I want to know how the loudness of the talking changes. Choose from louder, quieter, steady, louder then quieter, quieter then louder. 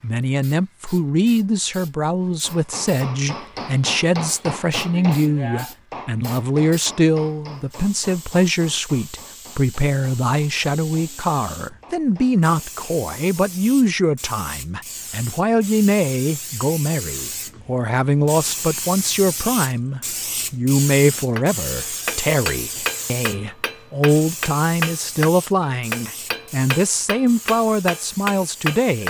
steady.